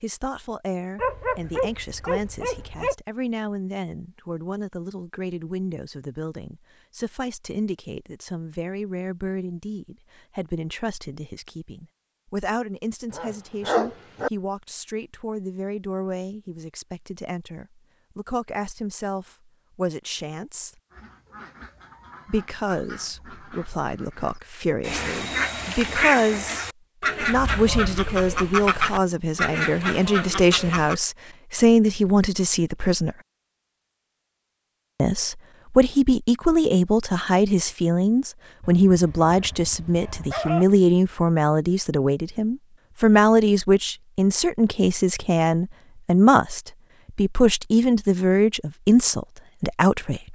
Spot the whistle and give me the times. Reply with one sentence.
The whistle can't be heard in this clip.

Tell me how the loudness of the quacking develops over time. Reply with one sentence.
The volume of the quacking goes up.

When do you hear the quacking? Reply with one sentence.
The quacking can be heard from 20.9 to 30.9 s.